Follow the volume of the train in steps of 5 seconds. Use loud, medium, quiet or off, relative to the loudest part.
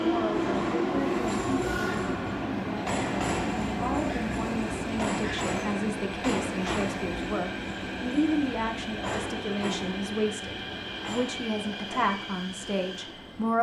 loud, loud, medium.